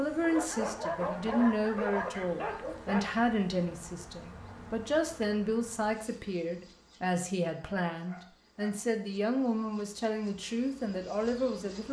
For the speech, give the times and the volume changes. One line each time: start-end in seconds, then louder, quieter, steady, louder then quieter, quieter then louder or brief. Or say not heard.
0.0-11.8 steady.